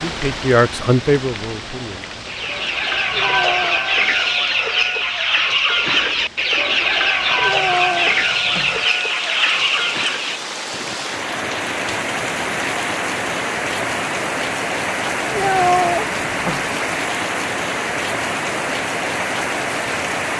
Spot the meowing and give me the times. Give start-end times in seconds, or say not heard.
3.1-3.8, 7.4-8.8, 15.3-16.7.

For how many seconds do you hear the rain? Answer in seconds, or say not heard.
20 s.